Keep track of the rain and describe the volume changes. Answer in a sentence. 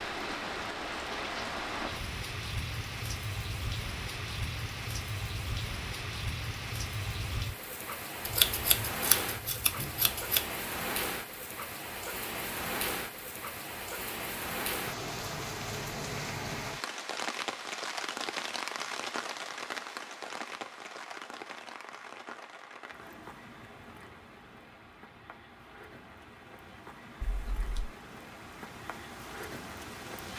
The loudness of the rain goes down.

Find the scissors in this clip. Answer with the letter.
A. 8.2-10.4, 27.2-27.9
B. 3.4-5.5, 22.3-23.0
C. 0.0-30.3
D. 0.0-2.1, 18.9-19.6
A.